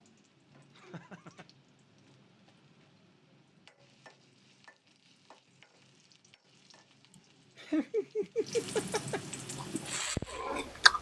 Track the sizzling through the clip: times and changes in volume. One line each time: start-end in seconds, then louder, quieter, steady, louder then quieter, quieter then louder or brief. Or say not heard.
0.0-10.7 louder.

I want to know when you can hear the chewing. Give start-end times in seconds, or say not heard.
9.6-10.9.